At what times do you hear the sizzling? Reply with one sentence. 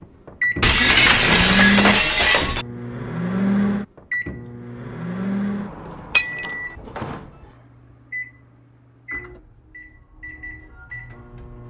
You can't hear the sizzling here.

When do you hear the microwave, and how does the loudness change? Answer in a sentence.
The microwave can be heard from 0.0 to 11.6 s, getting quieter.